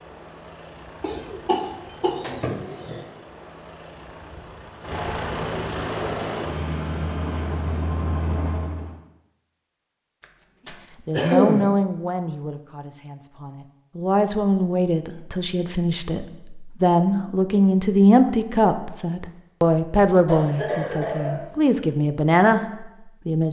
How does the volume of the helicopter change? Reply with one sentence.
The loudness of the helicopter goes up.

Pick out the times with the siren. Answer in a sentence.
The siren can't be heard in this clip.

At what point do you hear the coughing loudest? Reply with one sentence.
The volume of the coughing peaks at 11 seconds.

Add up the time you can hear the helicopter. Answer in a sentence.
The helicopter can be heard for 9 seconds in total.